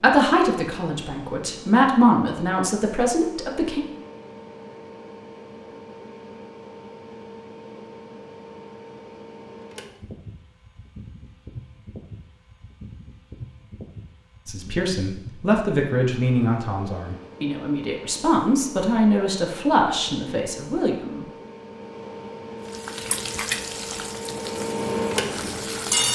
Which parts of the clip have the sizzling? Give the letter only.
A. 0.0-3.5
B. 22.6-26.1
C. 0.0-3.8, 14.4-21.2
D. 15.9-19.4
B.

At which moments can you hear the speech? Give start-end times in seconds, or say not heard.
0.0-3.8, 14.4-21.2.